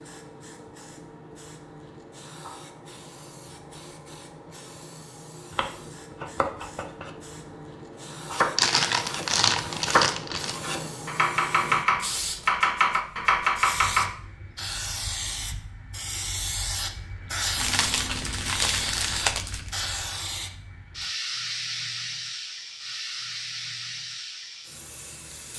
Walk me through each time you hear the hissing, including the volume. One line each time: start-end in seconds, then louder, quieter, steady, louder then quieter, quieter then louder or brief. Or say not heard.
0.0-25.5 louder.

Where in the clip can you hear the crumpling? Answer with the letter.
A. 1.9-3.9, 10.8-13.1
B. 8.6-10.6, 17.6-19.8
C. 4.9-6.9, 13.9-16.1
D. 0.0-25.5
B.